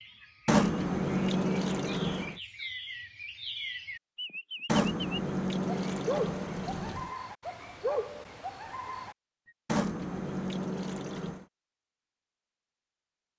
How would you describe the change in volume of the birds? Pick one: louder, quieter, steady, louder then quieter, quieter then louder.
louder.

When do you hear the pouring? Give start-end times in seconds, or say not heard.
0.5-2.4, 4.7-7.1, 9.7-11.4.